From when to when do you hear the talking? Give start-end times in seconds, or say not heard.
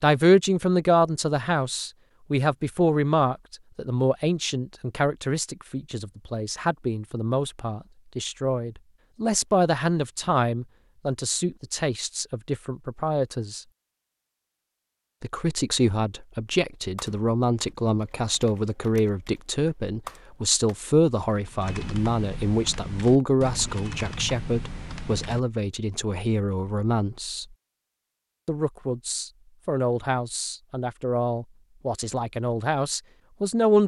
0.0-13.6, 15.2-27.4, 28.4-33.8.